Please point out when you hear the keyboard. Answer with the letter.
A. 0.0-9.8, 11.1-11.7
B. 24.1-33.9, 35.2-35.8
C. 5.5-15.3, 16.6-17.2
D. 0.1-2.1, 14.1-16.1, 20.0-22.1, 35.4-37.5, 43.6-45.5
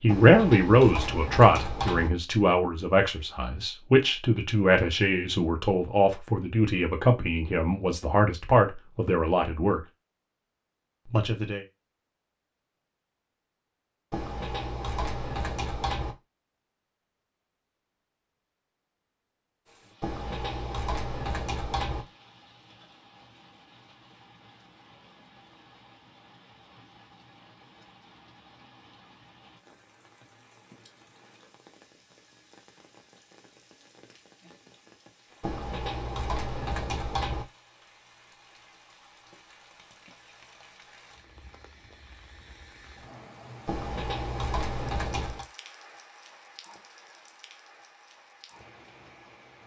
D.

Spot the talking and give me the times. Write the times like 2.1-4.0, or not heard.
0.0-9.8, 11.1-11.7.